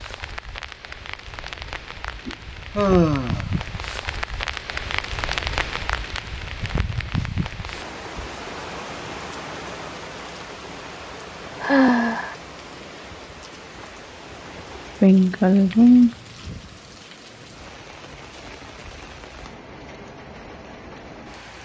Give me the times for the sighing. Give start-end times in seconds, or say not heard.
2.2-3.5, 11.6-12.3, 15.0-16.1.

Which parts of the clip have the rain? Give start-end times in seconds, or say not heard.
0.0-21.5.